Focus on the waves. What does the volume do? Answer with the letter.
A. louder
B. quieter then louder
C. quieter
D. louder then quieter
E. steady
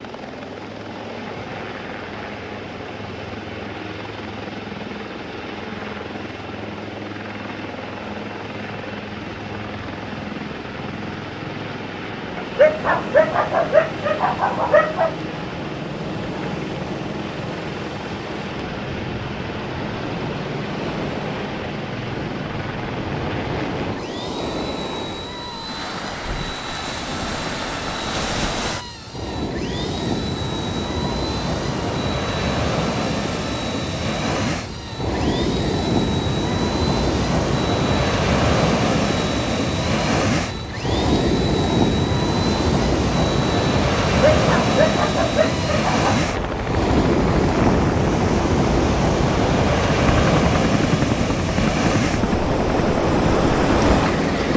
A.